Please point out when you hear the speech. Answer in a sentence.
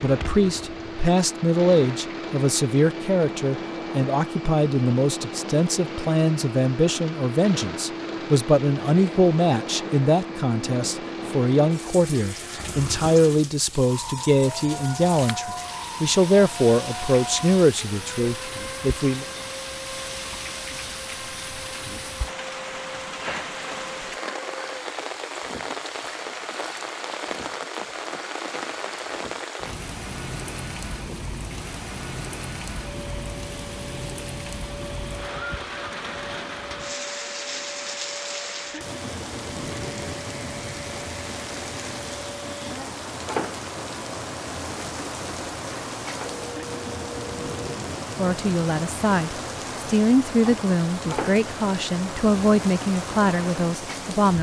The speech can be heard from 0.0 to 19.2 s and from 48.1 to 54.3 s.